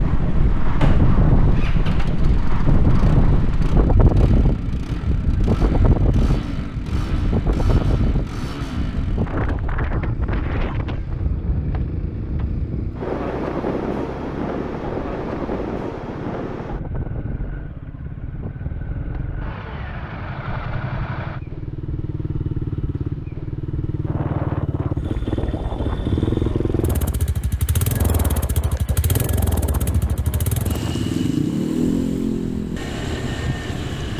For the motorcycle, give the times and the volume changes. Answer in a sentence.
The motorcycle can be heard from 0.0 to 34.1 s, getting louder.